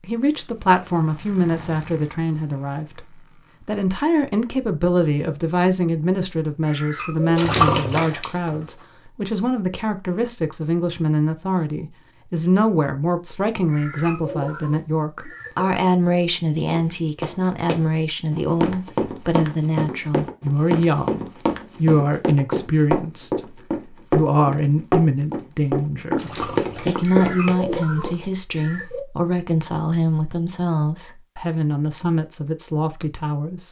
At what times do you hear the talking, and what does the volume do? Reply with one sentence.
The talking can be heard from 0.0 to 33.6 s, at a steady volume.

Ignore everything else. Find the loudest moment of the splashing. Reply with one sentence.
The loudest moment of the splashing is at 8 seconds.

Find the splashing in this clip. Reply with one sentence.
The splashing can be heard from 7.3 to 8.7 s and from 26.1 to 27.3 s.